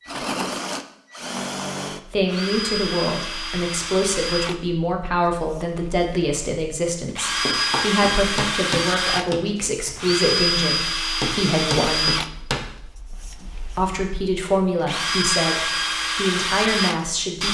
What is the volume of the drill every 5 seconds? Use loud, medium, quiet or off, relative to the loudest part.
medium, loud, loud, loud.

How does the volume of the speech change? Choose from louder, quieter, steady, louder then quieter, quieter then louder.
steady.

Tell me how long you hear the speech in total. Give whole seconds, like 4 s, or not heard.
14 s.